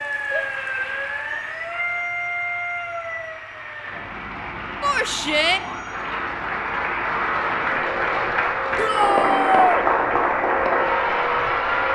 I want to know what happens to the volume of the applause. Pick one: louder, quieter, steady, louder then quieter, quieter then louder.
louder.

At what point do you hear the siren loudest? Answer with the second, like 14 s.
2 s.